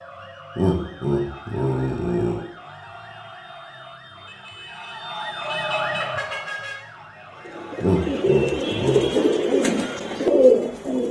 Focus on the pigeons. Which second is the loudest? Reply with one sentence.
The loudest moment of the pigeons is at 10 seconds.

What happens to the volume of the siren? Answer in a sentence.
The loudness of the siren goes up, then down.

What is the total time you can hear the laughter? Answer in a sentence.
The laughter can be heard for 3 seconds in total.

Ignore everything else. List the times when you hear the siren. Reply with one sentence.
The siren can be heard from 0.0 to 8.2 s.